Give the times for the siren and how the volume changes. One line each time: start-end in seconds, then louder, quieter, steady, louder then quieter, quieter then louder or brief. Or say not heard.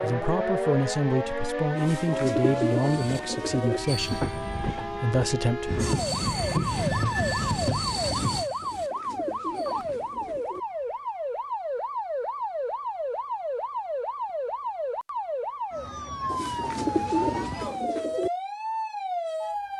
0.0-19.7 steady.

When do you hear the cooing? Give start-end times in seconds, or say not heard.
1.8-3.8, 8.6-10.6, 16.2-18.3.